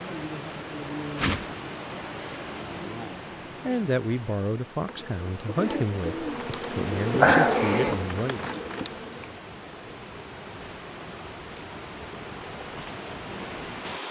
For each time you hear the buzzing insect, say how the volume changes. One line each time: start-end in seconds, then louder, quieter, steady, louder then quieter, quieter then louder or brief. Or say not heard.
4.8-9.3 louder then quieter.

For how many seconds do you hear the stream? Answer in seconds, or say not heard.
14 s.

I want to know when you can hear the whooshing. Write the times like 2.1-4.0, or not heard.
1.1-1.6.